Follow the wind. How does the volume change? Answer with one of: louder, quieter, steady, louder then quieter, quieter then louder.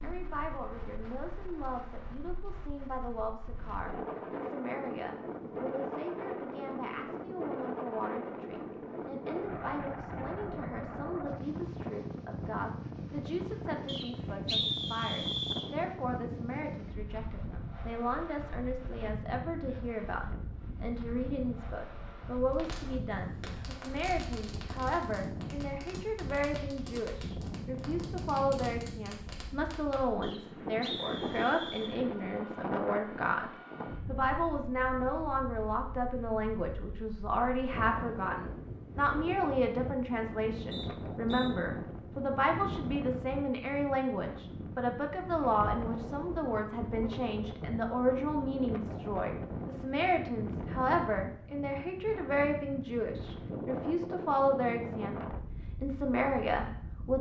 steady.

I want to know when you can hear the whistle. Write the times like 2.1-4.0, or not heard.
13.8-15.7, 30.2-31.9, 40.7-41.5.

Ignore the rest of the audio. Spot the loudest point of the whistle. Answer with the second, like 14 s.
15 s.